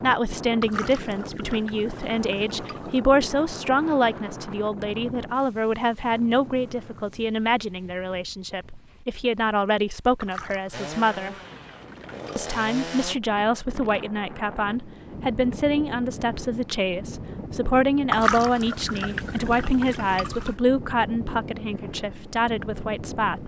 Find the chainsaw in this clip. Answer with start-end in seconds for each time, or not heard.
10.7-13.2.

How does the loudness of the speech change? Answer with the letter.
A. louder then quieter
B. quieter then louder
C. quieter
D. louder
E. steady
E.